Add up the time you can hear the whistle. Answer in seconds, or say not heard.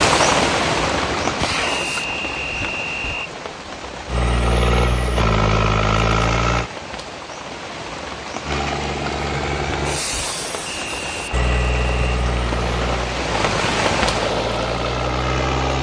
3 s.